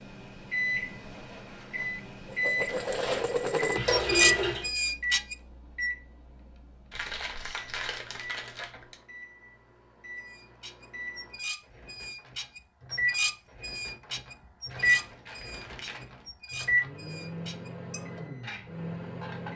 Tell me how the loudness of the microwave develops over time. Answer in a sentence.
The volume of the microwave goes down, then up.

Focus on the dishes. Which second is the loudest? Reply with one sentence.
The volume of the dishes peaks at 4 seconds.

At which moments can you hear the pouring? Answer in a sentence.
You can hear the pouring from 3.8 to 4.7 s.